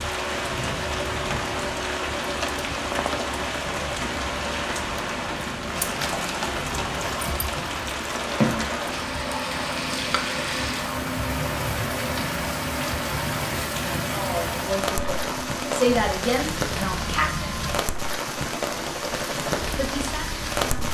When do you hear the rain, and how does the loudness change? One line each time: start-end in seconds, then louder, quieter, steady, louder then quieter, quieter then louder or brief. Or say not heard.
0.0-20.8 steady.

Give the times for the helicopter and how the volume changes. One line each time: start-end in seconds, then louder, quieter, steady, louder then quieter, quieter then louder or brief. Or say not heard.
0.0-20.8 steady.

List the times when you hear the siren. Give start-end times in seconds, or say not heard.
not heard.